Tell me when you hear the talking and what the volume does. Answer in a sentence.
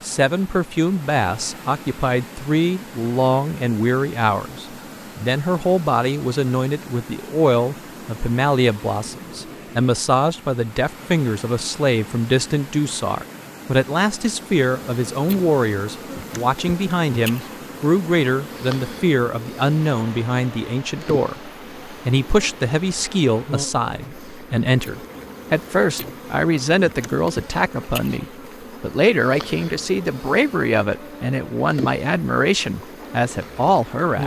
The talking can be heard from 0.0 to 34.2 s, at a steady volume.